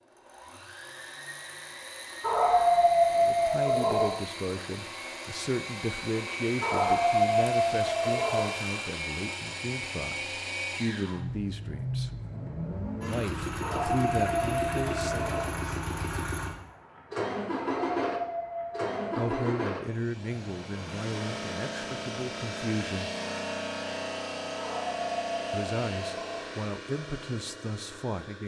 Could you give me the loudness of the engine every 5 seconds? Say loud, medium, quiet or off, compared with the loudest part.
medium, loud, loud, loud, loud, medium.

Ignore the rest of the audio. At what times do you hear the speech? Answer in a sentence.
You can hear the speech from 3.1 to 12.2 s, from 13.1 to 15.3 s, from 19.1 to 23.1 s and from 25.5 to 28.4 s.